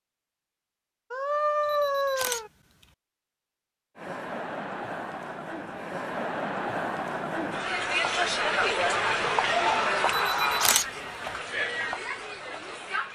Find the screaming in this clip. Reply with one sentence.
The screaming can be heard from 1.1 to 2.5 s and from 9.4 to 10.8 s.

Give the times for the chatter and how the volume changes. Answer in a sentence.
You can hear the chatter from 4.0 to 13.1 s, getting louder then quieter.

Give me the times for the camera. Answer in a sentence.
The camera can be heard from 1.6 to 2.9 s and from 10.1 to 11.3 s.